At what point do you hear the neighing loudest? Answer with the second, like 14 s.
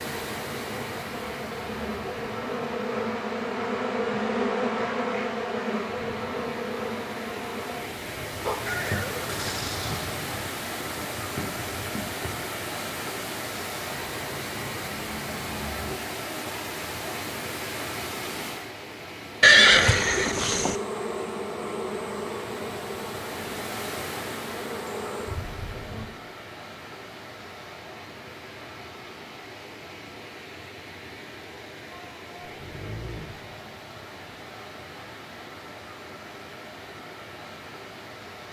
20 s.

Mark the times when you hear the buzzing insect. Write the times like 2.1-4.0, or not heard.
0.0-12.4, 19.6-26.1.